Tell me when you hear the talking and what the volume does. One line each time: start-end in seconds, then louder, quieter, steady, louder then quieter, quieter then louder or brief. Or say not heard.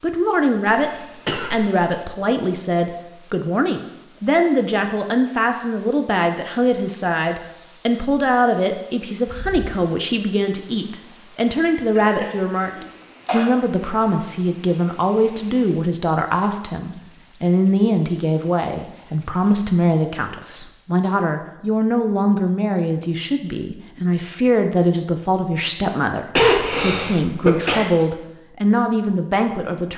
0.0-29.9 steady.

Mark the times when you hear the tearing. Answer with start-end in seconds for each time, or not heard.
not heard.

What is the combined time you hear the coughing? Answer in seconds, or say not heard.
4 s.